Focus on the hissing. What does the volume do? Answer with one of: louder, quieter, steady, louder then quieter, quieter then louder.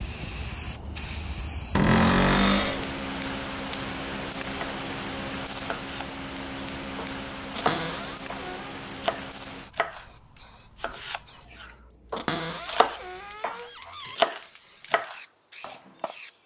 quieter.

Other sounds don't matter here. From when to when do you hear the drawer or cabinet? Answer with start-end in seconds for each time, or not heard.
1.8-2.9, 7.5-8.8, 12.2-14.2.